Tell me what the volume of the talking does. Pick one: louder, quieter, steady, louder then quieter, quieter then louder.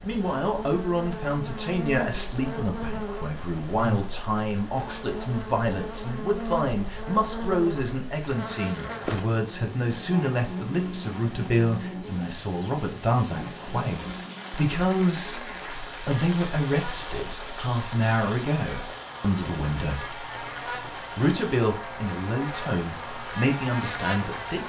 steady.